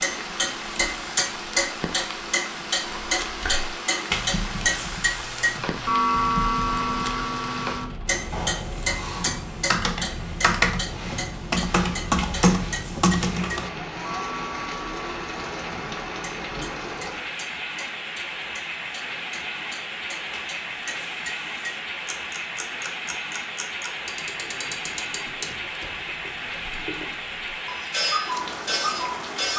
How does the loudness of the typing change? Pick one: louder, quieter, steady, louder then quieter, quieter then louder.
louder.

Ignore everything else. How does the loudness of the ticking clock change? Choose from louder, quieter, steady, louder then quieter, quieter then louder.
quieter then louder.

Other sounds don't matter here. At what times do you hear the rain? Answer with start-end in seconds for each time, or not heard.
0.0-29.5.